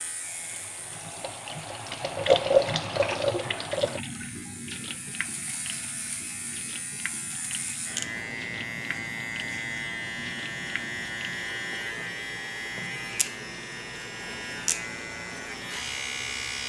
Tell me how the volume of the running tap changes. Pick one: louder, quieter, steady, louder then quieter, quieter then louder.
quieter.